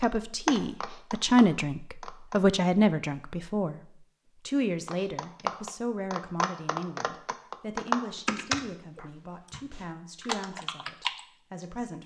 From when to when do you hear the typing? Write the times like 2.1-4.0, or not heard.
0.0-2.4, 4.8-11.8.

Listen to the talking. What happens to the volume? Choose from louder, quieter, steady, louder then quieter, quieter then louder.
quieter.